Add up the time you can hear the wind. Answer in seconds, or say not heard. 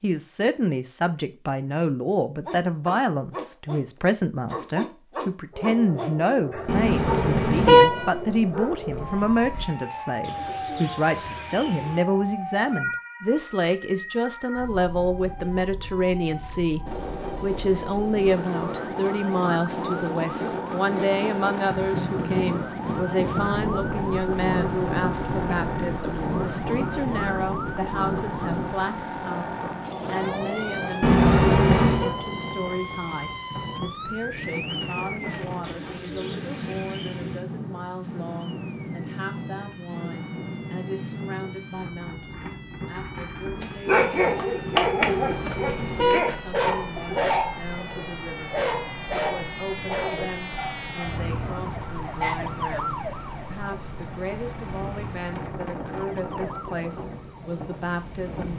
42 s.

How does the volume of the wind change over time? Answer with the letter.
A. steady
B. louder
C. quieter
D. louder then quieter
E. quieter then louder
C.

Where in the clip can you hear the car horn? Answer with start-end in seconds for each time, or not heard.
6.7-8.1, 31.0-32.1, 45.0-47.2.